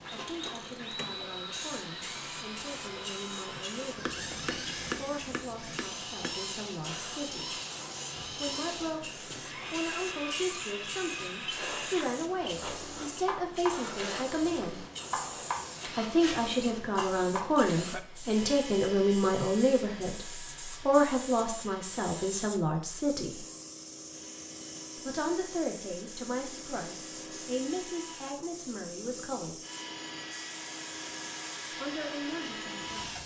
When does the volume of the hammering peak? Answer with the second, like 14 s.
5 s.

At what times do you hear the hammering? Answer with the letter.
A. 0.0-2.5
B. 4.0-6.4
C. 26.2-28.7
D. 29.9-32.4
B.